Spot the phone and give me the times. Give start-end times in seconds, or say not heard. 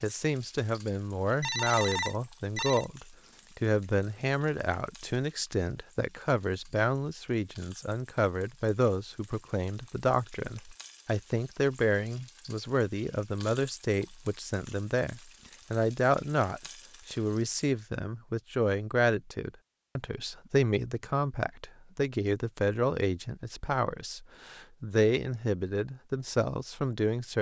1.4-2.9.